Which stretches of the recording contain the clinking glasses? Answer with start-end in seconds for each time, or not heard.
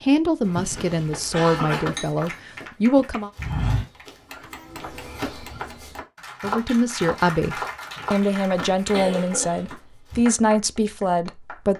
1.9-2.4.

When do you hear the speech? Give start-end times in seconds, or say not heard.
0.0-3.3, 6.4-11.7.